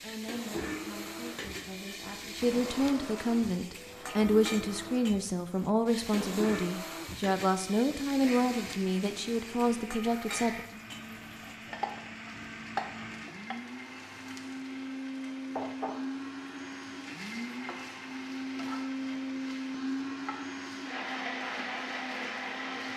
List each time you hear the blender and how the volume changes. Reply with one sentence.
The blender can be heard from 0.2 to 22.9 s, getting louder.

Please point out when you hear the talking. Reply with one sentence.
You can hear the talking from 0.0 to 10.6 s.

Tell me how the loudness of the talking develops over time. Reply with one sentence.
The loudness of the talking goes up.